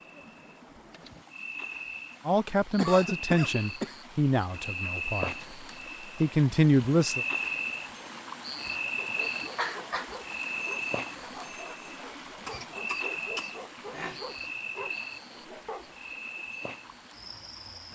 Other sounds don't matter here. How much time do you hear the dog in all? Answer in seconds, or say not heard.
7 s.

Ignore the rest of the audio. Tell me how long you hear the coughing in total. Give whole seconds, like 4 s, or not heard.
4 s.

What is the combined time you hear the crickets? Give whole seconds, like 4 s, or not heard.
18 s.